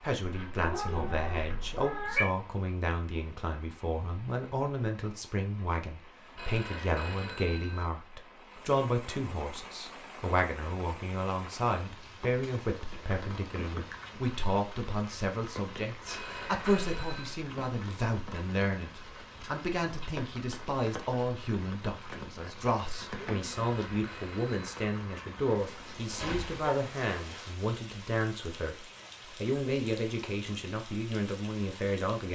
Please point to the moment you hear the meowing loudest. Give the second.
2 s.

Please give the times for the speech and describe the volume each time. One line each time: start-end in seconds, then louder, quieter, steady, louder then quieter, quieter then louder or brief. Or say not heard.
0.0-32.3 steady.